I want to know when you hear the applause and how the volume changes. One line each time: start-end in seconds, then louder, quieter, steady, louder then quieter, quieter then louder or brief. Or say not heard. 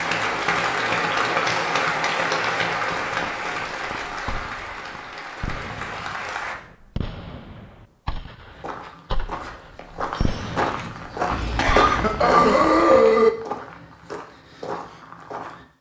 0.0-6.5 quieter.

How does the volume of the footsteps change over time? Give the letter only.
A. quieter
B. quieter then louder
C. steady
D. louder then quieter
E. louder
D.